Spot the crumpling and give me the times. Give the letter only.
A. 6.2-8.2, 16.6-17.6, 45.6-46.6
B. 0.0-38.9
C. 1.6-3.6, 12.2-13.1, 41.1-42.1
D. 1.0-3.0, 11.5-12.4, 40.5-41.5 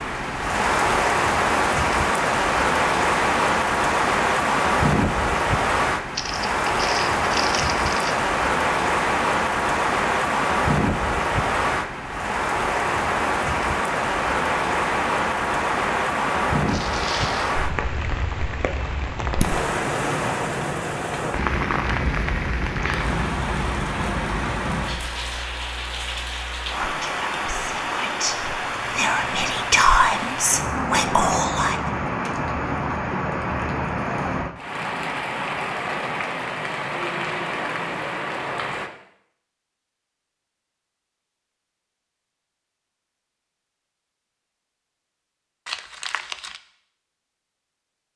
A.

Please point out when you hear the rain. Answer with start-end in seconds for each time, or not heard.
0.0-38.9.